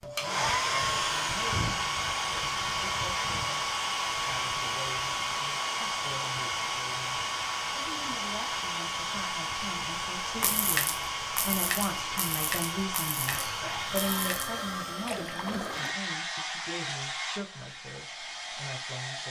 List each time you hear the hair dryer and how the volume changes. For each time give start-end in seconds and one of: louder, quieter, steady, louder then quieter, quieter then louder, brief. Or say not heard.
0.0-19.2 quieter.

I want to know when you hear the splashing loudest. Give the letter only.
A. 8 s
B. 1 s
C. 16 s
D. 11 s
D.